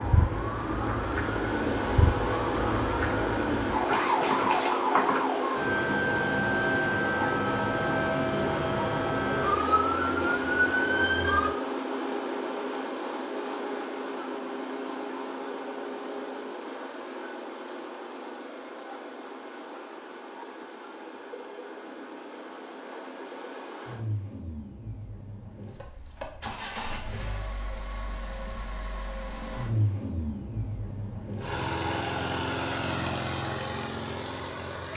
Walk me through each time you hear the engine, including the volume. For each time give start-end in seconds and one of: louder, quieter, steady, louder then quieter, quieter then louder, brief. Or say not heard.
0.0-34.9 quieter then louder.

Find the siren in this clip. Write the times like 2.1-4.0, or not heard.
0.0-11.5.